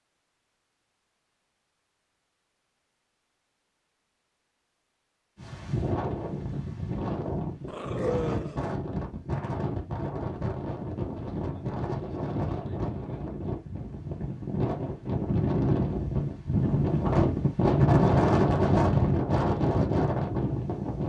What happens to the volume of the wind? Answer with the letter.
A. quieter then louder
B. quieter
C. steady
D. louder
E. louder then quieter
D.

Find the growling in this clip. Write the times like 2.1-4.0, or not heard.
7.7-8.6.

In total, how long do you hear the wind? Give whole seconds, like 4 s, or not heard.
16 s.